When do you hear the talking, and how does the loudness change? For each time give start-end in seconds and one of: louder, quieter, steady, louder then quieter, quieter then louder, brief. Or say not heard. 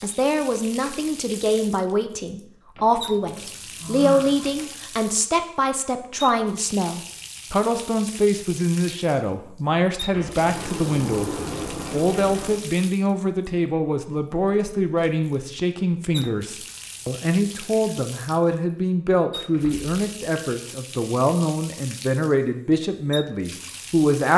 0.0-24.3 steady.